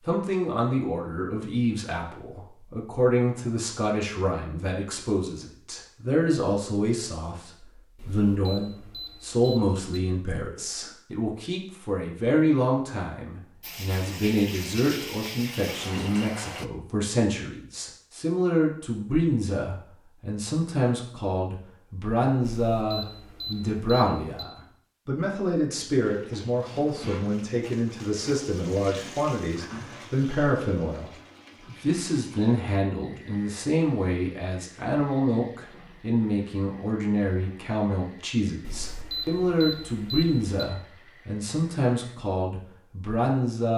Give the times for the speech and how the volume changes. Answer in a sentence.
The speech can be heard from 0.0 to 43.7 s, at a steady volume.